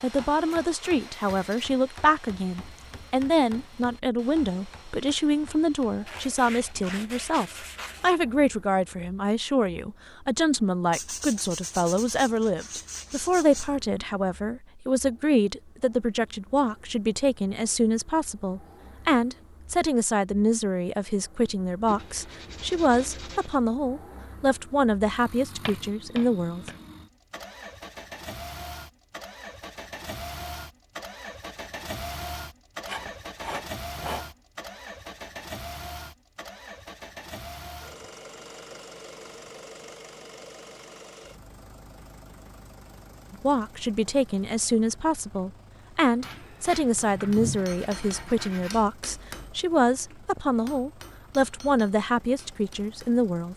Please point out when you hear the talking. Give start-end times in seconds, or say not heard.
0.0-26.7, 43.3-53.5.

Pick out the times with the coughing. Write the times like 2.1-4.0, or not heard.
not heard.